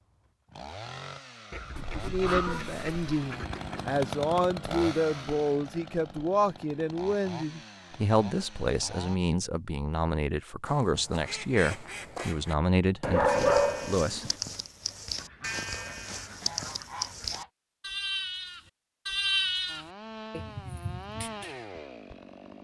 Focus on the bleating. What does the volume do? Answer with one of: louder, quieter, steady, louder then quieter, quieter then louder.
louder then quieter.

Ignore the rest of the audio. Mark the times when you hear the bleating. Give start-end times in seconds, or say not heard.
13.2-21.7.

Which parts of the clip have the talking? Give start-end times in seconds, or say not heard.
2.0-14.2.